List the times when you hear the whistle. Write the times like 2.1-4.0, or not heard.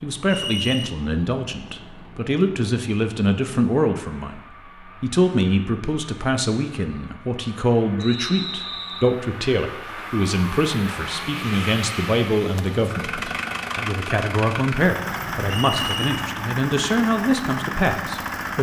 0.2-0.9, 8.0-9.2, 15.5-16.1.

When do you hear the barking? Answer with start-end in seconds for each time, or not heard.
not heard.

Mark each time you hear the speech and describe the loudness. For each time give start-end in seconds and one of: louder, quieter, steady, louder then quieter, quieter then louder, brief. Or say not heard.
0.0-18.5 steady.